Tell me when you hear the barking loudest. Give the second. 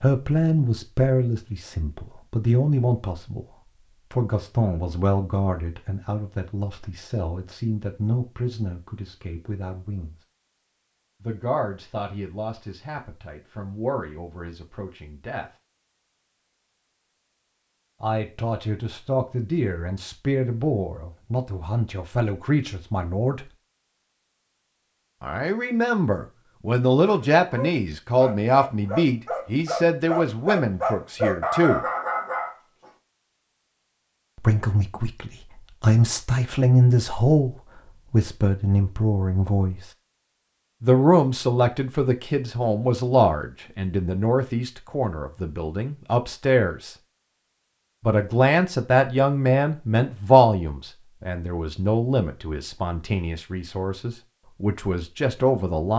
31 s.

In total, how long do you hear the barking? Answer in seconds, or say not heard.
6 s.